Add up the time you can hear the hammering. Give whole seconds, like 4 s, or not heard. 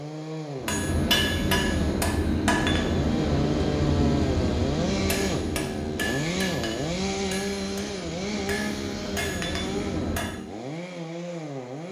10 s.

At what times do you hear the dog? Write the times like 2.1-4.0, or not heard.
not heard.